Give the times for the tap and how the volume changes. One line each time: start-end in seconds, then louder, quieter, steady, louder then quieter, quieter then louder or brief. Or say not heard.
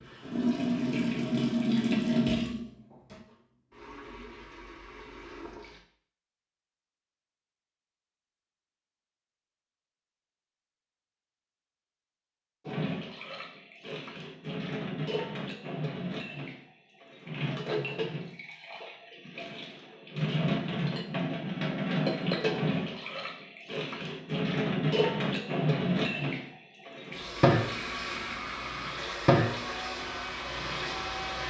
0.0-5.8 quieter
12.7-31.4 louder.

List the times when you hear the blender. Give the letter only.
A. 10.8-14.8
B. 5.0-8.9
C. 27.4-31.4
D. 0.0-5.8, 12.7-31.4
C.